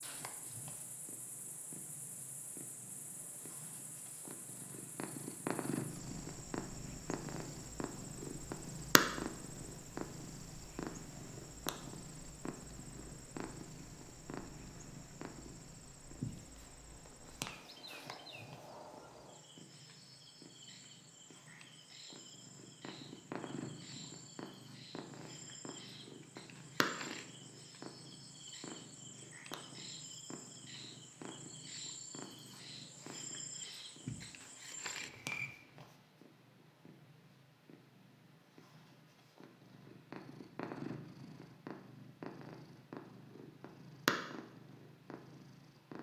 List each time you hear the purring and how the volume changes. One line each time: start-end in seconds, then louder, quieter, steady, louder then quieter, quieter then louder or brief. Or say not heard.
0.0-45.9 quieter then louder.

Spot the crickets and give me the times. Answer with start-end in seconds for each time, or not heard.
0.0-35.5.